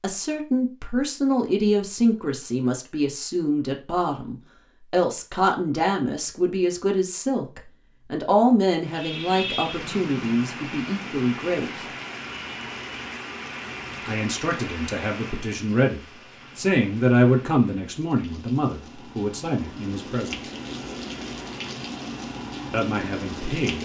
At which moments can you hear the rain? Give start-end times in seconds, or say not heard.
8.8-23.8.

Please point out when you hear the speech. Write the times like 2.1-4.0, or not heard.
0.0-11.8, 14.1-20.5, 22.7-23.8.